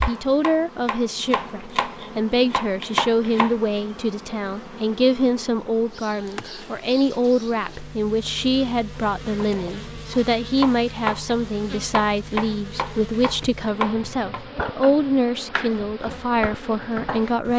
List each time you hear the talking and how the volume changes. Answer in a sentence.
The talking can be heard from 0.1 to 17.5 s, at a steady volume.